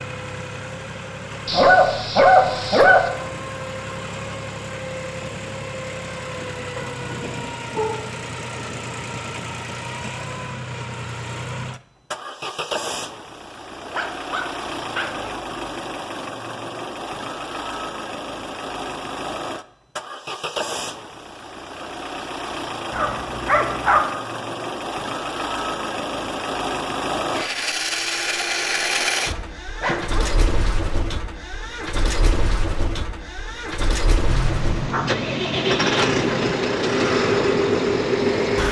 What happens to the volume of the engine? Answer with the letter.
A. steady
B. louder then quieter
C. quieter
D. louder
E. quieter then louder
D.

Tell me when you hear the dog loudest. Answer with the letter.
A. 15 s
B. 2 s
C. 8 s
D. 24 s
B.